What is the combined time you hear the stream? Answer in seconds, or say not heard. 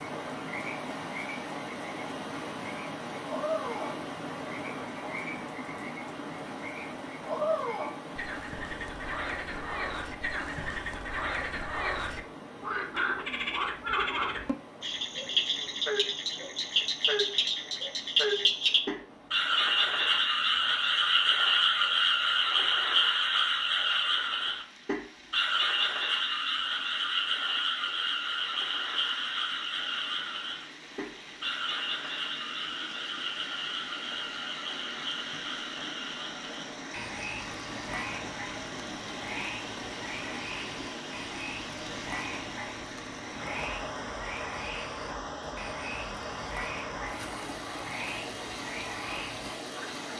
50 s.